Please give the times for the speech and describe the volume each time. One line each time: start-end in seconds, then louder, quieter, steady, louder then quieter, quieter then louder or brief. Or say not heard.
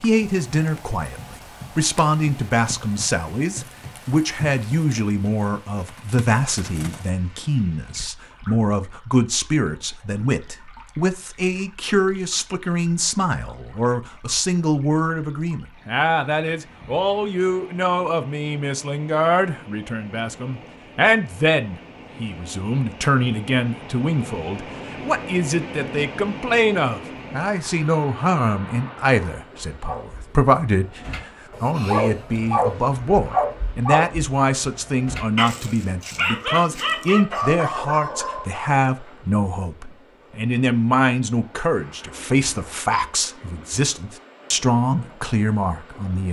0.0-46.2 steady.